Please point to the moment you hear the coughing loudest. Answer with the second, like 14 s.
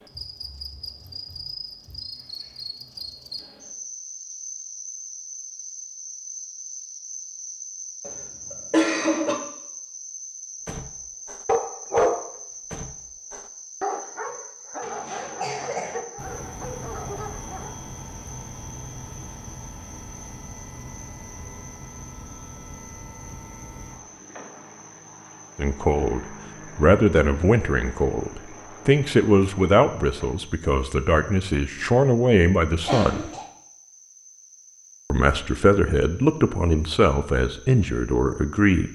9 s.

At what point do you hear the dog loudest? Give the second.
12 s.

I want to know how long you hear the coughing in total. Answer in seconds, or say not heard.
3 s.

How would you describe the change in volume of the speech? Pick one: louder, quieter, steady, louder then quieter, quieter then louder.
steady.